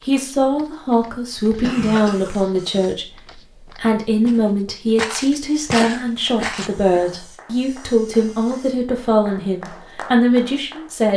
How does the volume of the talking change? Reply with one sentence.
The volume of the talking stays about the same.